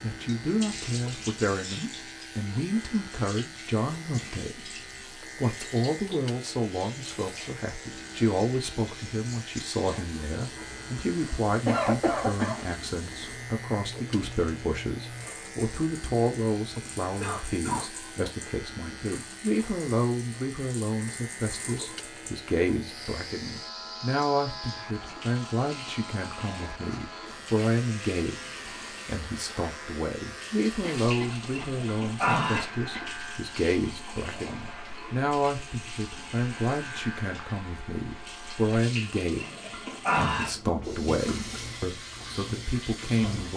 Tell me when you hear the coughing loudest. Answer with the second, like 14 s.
12 s.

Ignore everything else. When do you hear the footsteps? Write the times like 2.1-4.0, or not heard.
not heard.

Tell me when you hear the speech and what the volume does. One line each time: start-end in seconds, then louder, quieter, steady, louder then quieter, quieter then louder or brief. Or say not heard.
0.0-43.5 steady.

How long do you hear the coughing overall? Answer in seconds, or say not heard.
3 s.